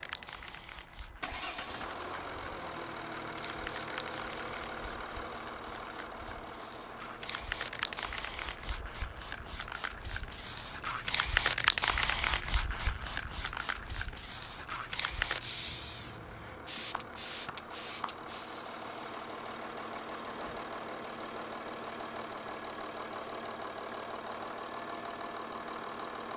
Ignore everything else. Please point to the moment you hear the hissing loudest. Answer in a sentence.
The volume of the hissing peaks at 12 seconds.